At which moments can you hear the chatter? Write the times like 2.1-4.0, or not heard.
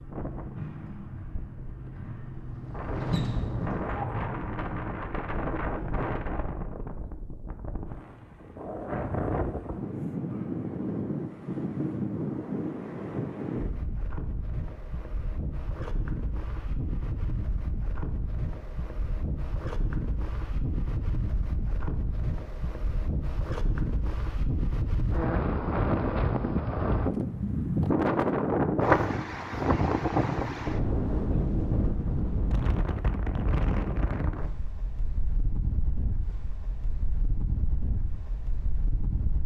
not heard.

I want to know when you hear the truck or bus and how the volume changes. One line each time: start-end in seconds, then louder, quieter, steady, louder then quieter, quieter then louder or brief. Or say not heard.
0.0-6.1 louder then quieter.